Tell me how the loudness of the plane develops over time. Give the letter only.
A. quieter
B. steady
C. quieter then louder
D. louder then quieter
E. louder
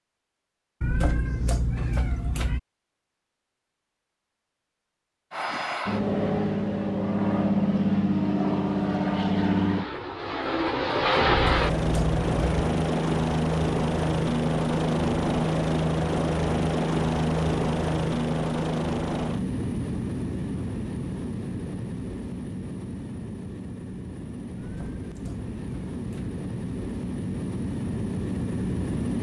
A.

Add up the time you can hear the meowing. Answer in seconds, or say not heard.
5 s.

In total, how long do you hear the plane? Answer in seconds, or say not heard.
24 s.